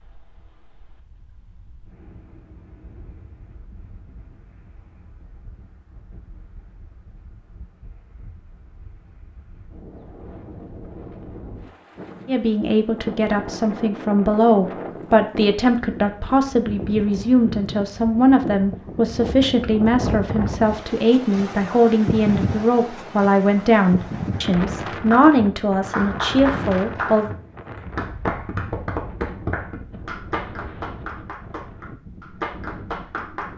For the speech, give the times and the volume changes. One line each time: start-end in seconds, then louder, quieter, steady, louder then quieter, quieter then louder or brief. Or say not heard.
12.2-27.3 steady.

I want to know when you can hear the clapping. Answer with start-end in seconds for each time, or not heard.
24.9-33.5.